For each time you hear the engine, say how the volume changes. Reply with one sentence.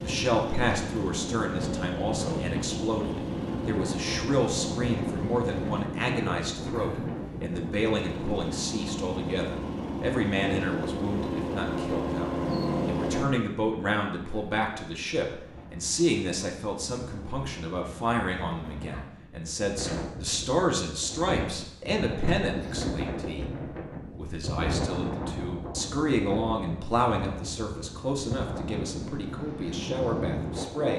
The engine can be heard from 0.0 to 5.8 s, at a steady volume; and from 8.0 to 13.2 s, getting louder.